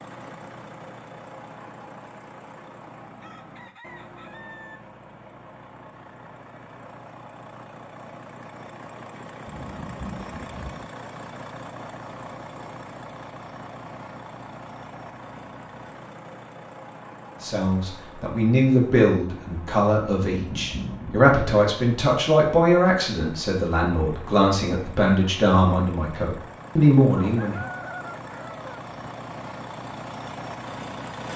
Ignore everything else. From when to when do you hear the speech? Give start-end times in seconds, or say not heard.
17.4-27.6.